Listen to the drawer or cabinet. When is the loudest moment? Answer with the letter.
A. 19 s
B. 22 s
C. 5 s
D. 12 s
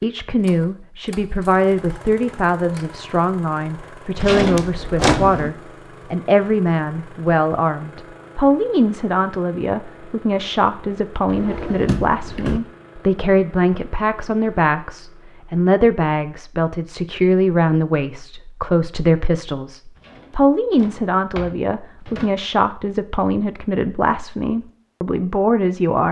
C.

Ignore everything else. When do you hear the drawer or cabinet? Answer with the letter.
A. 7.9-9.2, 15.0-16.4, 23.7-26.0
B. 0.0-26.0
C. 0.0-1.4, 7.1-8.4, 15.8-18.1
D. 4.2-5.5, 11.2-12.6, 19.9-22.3
D.